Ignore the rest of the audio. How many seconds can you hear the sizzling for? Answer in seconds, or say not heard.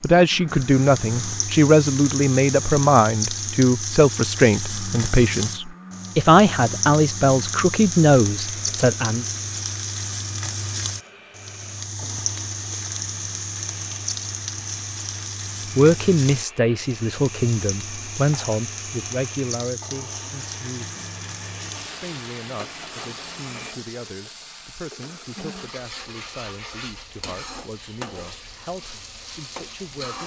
30 s.